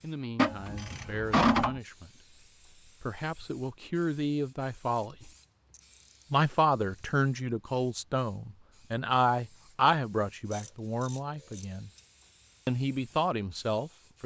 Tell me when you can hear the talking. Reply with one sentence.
The talking can be heard from 0.0 to 5.3 s, from 6.3 to 11.9 s and from 12.7 to 14.2 s.